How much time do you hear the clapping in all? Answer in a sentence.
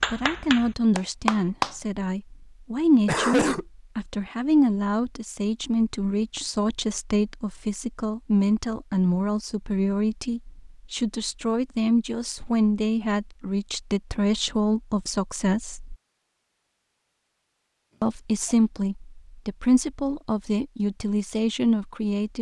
You can hear the clapping for 2 seconds altogether.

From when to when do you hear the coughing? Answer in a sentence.
You can hear the coughing from 3.0 to 3.6 s and from 17.9 to 18.6 s.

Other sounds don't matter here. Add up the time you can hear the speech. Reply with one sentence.
You can hear the speech for 20 seconds altogether.